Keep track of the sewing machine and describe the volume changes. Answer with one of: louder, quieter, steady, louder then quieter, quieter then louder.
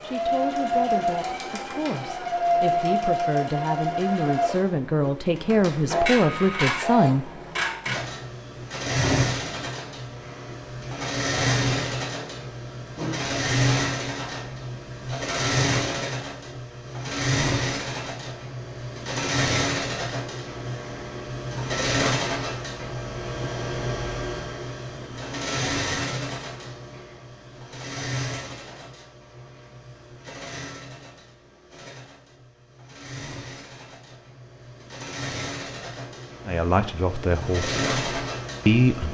quieter.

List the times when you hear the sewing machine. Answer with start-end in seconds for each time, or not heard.
0.0-39.0.